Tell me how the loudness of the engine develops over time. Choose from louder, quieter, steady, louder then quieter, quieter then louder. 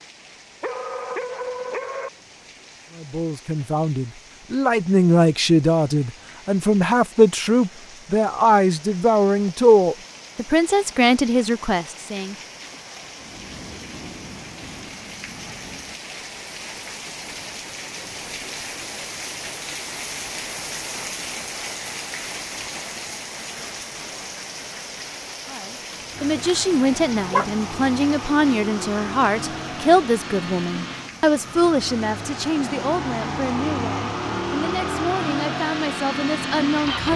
louder.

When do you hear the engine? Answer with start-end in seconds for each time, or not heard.
26.1-37.1.